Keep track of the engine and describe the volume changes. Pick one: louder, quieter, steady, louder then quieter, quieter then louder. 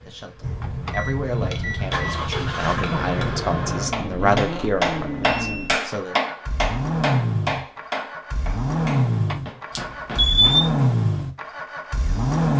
louder.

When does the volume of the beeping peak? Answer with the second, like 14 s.
10 s.